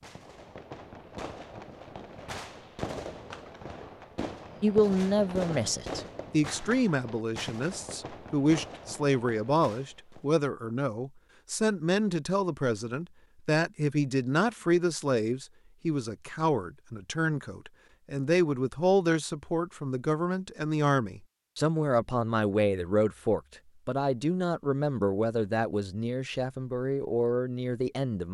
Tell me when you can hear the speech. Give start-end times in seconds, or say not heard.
4.6-28.2.